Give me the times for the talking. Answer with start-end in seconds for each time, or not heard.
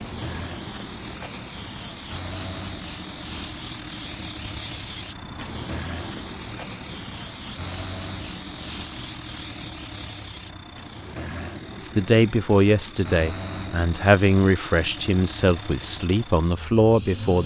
11.8-17.4.